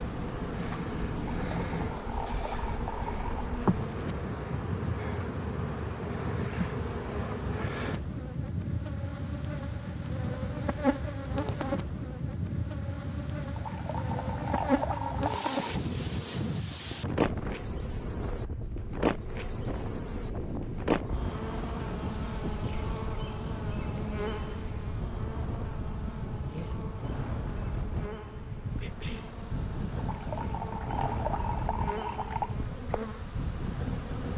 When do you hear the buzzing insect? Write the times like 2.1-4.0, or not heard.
0.0-34.3.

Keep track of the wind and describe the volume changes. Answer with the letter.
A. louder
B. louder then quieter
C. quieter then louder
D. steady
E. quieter
D.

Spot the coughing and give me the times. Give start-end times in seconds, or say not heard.
28.8-29.4.